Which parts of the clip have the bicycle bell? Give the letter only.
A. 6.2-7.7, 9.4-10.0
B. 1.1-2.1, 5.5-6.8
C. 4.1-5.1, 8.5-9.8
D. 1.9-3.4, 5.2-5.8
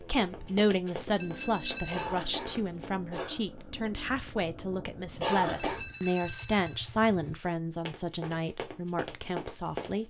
B.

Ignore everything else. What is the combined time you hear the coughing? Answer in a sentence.
You can hear the coughing for 2 seconds altogether.